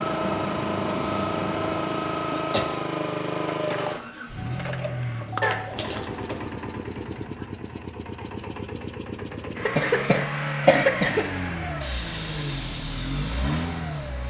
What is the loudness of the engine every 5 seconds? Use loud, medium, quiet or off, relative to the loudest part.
loud, medium, loud.